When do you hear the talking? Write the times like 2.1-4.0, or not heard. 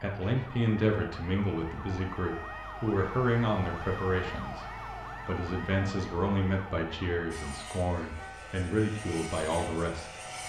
0.0-10.3.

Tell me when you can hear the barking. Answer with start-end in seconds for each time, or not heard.
not heard.